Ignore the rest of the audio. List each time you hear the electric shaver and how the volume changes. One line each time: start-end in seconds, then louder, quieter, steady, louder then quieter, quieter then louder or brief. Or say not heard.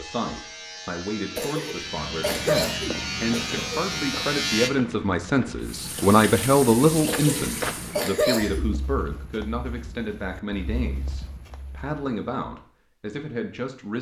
0.0-4.7 louder.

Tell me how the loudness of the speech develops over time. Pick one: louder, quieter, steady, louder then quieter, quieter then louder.
louder then quieter.